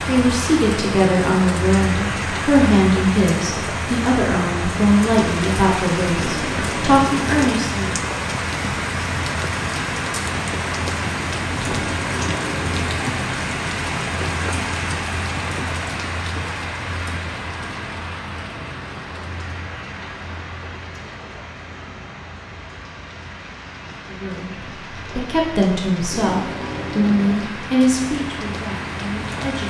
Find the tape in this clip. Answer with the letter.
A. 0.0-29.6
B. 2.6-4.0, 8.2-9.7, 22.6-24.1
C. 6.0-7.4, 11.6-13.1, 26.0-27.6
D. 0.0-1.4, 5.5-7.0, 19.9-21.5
C.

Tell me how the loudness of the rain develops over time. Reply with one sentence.
The loudness of the rain goes down.